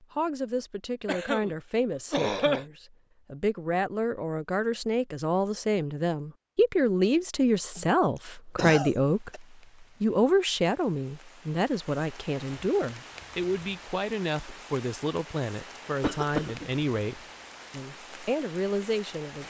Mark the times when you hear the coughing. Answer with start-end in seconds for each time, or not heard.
1.1-1.5, 2.1-2.6, 7.8-9.4, 16.0-16.6.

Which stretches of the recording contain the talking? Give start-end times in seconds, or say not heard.
0.0-19.4.